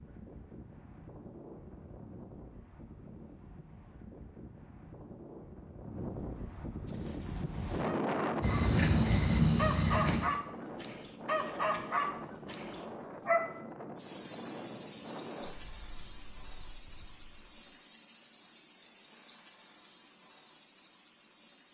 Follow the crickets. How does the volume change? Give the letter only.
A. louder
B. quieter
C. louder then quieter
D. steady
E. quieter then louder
B.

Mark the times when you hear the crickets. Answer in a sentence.
You can hear the crickets from 8.4 to 21.6 s.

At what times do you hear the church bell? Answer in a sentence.
You can't hear the church bell here.